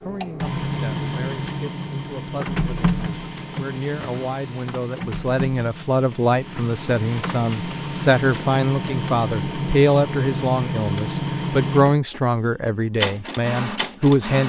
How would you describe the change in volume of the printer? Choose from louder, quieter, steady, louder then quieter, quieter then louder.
quieter then louder.